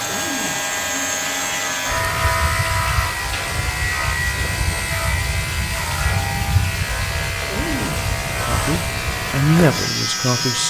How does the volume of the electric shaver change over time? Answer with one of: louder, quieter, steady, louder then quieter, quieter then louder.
steady.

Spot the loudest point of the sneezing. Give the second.
8 s.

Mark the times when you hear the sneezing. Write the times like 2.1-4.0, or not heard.
0.0-0.7, 7.5-8.1.